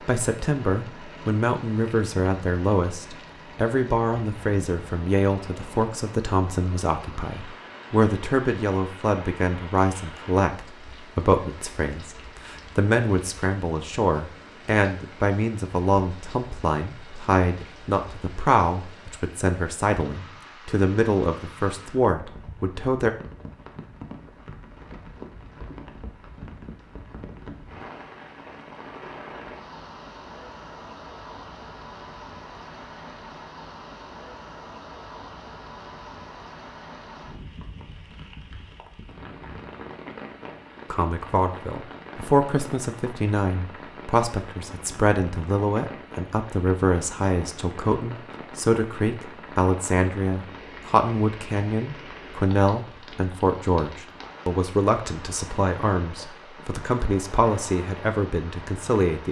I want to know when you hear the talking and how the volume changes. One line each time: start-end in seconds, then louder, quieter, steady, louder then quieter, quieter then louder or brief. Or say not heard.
0.1-23.1 steady
40.9-59.2 steady.